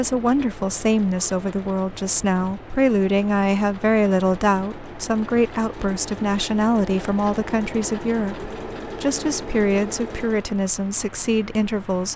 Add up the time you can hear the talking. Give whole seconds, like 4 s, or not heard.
12 s.